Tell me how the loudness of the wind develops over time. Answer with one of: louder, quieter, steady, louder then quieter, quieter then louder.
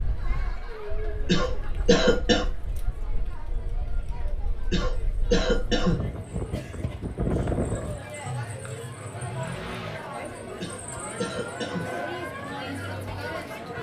louder.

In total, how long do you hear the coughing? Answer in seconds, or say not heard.
4 s.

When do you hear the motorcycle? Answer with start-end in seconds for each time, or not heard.
8.2-10.0.